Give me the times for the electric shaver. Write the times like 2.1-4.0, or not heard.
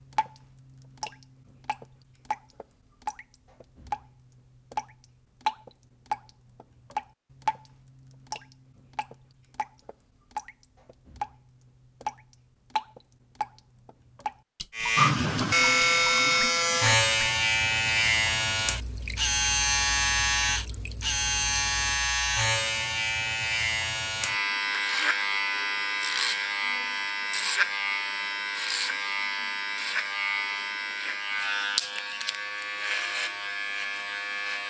14.8-34.6.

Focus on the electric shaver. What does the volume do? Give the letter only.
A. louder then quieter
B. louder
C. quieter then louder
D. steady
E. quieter
E.